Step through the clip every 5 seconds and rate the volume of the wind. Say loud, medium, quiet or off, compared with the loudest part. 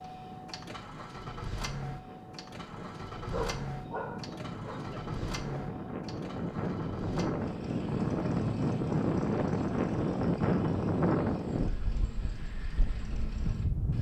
quiet, loud, loud.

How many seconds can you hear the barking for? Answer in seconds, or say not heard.
2 s.